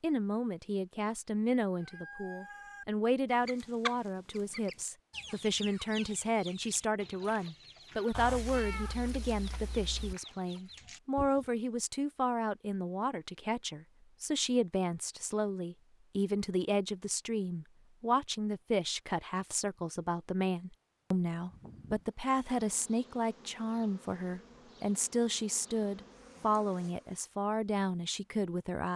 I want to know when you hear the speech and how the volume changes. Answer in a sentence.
You can hear the speech from 0.0 to 28.9 s, at a steady volume.